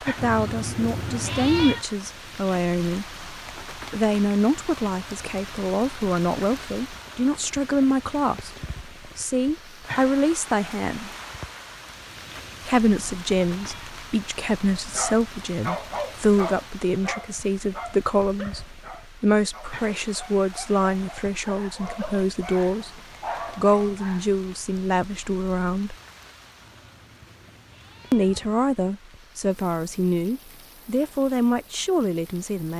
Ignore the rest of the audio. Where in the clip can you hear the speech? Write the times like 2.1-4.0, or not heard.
0.1-11.1, 12.7-25.9, 28.1-32.7.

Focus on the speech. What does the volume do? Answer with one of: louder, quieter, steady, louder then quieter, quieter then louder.
steady.